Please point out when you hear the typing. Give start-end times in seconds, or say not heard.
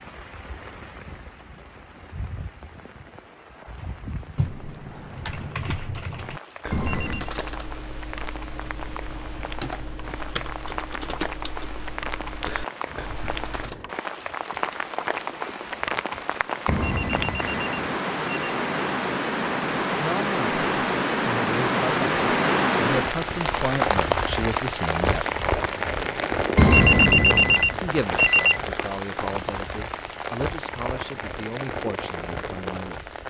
3.5-13.8.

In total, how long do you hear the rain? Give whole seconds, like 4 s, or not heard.
33 s.